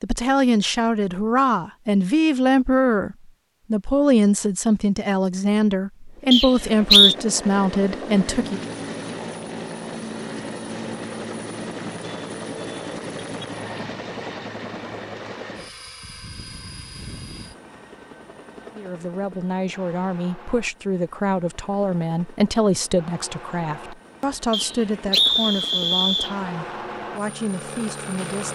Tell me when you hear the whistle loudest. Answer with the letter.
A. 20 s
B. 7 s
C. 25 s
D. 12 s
B.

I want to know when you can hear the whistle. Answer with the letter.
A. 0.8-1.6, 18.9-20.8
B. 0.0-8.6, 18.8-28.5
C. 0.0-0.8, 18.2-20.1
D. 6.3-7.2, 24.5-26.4
D.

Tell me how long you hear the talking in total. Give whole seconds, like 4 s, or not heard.
18 s.